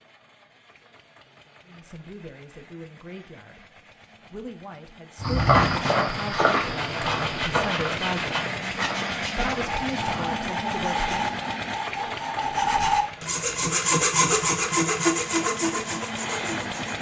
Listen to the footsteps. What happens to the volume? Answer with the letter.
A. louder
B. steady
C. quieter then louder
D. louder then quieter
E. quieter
E.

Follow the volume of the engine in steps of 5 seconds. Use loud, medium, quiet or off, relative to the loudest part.
quiet, loud, loud, loud.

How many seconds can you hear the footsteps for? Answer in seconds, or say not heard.
5 s.